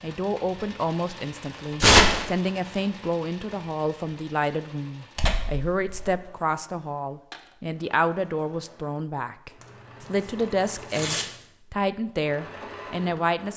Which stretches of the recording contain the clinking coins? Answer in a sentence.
You can hear the clinking coins from 7.3 to 7.8 s.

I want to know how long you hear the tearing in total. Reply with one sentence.
You can hear the tearing for 3 seconds altogether.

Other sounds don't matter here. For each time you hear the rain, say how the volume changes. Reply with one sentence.
The rain can't be heard in this clip.